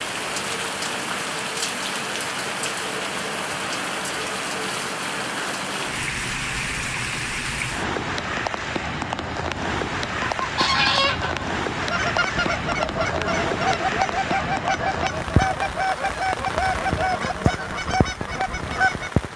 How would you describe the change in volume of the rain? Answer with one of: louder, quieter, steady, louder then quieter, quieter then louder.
steady.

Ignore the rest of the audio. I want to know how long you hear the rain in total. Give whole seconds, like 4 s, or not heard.
19 s.